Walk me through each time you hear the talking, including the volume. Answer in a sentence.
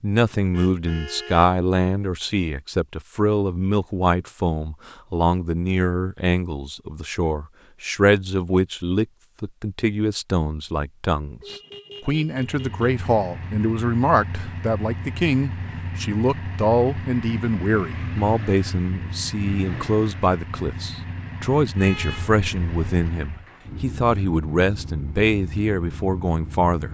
You can hear the talking from 0.0 to 26.8 s, at a steady volume.